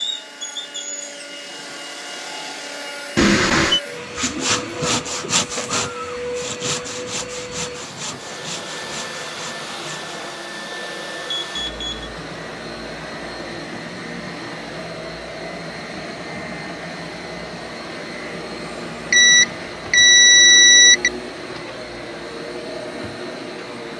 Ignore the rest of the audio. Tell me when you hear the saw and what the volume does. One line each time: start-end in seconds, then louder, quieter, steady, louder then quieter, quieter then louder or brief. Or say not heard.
4.2-10.4 quieter.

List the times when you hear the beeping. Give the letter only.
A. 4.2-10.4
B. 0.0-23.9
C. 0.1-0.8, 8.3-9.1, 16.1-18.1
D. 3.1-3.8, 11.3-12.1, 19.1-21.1
D.